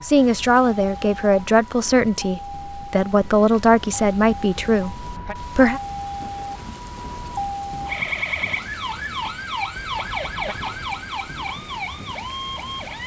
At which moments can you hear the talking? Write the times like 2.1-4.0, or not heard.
0.0-5.8.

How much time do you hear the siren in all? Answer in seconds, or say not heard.
13 s.